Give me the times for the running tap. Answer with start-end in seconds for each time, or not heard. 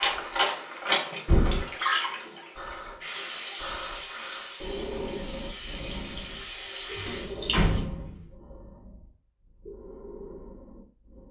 0.0-7.8.